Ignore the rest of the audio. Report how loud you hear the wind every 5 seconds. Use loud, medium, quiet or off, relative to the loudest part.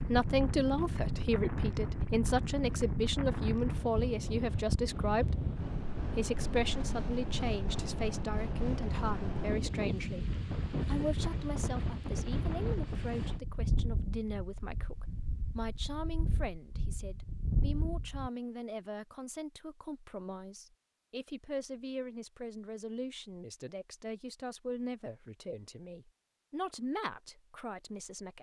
loud, loud, loud, medium, off, off.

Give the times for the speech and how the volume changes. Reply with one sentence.
The speech can be heard from 0.0 to 28.3 s, getting quieter.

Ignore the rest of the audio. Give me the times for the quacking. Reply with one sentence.
You can't hear the quacking here.